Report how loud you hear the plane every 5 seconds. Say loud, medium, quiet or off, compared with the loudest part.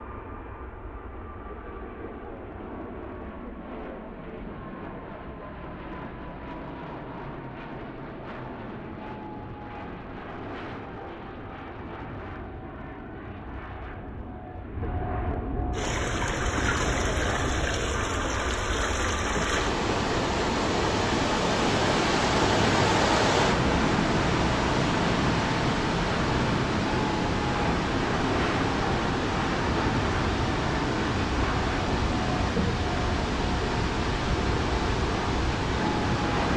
medium, medium, medium, loud, loud, loud, loud, loud.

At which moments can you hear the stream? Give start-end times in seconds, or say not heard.
15.7-36.5.